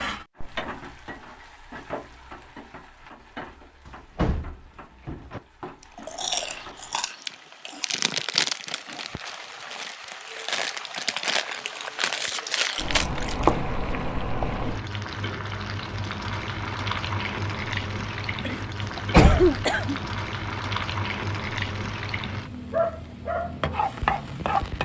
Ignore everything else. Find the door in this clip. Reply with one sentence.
You can hear the door from 3.9 to 5.4 s and from 18.8 to 20.1 s.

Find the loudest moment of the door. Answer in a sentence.
The loudest moment of the door is at 19 seconds.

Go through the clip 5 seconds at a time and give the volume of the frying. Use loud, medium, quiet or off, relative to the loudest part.
medium, quiet, loud, loud, loud.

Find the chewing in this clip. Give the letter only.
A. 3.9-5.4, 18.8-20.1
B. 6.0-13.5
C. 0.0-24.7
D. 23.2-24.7
B.